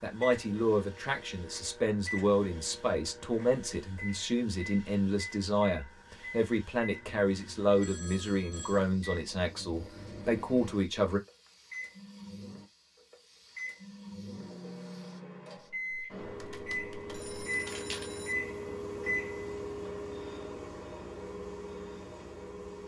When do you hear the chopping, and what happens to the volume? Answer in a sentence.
You can't hear the chopping here.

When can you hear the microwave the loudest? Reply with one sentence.
The loudest moment of the microwave is at 19 seconds.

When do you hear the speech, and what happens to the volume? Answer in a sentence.
The speech can be heard from 0.0 to 11.2 s, at a steady volume.